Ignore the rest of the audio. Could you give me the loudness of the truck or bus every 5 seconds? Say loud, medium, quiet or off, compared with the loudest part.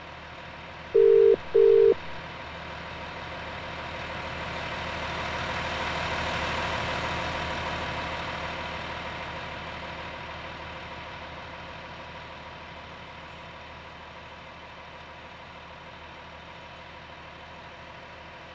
medium, loud, medium, quiet.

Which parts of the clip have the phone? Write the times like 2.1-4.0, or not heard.
0.9-2.1.